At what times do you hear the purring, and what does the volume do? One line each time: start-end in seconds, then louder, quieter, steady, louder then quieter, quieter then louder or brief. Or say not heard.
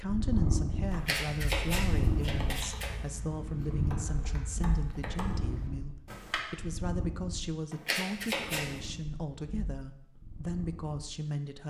0.0-11.2 quieter.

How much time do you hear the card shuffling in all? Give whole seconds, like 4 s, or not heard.
3 s.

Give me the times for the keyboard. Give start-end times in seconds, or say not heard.
0.8-6.4.